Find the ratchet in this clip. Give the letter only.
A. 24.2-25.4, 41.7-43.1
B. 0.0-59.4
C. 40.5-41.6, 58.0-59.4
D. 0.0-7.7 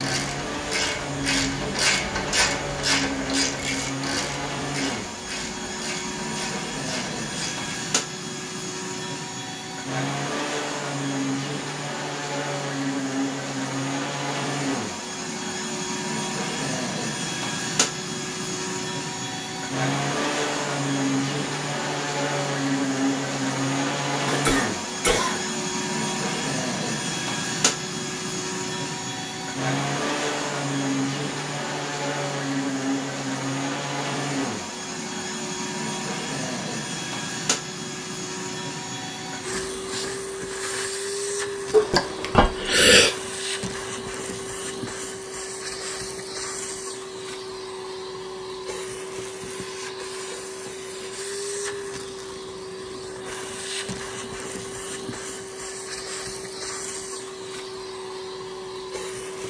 D.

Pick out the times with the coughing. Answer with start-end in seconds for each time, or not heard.
24.2-25.4, 41.7-43.1.